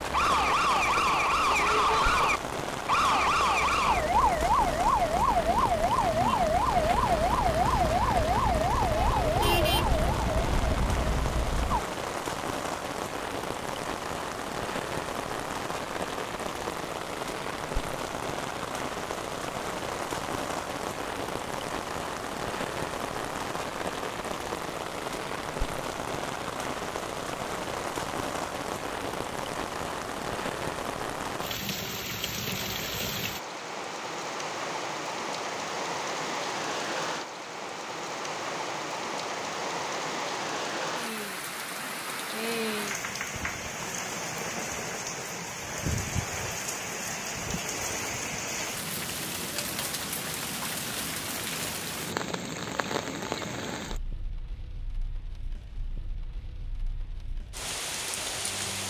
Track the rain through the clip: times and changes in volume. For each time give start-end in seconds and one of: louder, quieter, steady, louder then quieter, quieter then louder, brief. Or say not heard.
0.0-58.8 steady.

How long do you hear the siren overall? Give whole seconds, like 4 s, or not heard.
12 s.